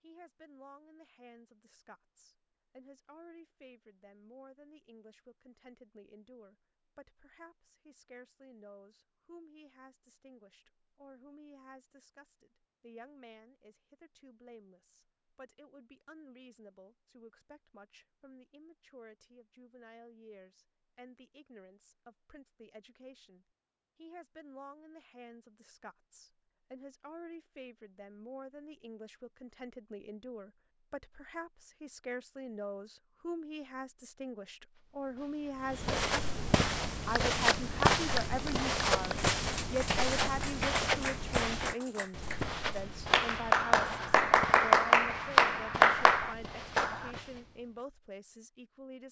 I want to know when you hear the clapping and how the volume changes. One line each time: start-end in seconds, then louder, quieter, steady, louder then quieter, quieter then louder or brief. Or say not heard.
36.6-47.1 quieter then louder.